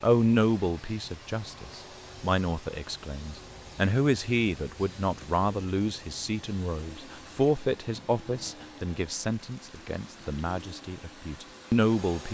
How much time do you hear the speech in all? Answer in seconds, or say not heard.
12 s.